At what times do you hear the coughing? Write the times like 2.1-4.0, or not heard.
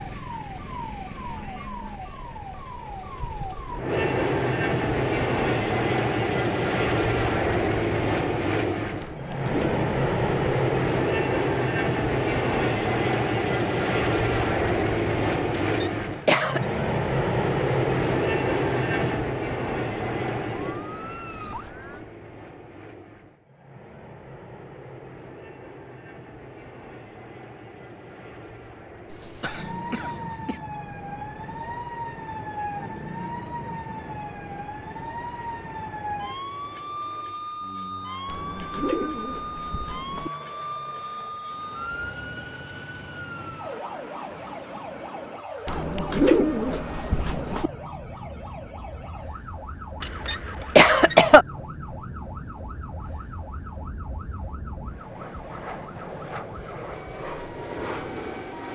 15.5-16.6, 29.1-30.6, 50.0-51.5.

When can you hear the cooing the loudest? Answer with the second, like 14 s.
46 s.